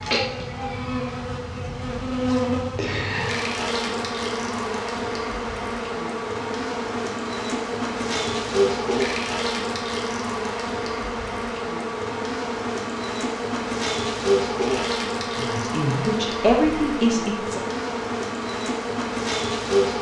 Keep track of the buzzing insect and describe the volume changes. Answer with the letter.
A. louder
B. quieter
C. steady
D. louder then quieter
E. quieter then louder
C.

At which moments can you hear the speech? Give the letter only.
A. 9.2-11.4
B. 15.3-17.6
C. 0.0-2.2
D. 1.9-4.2
B.